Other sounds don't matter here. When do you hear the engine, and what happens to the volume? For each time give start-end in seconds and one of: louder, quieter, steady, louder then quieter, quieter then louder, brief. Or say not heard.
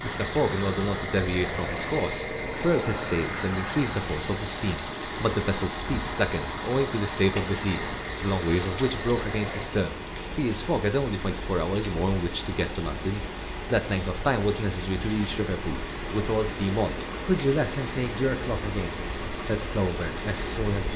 0.0-9.7 steady.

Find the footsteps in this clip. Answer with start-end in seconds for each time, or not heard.
not heard.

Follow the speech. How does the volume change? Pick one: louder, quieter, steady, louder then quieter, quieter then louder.
steady.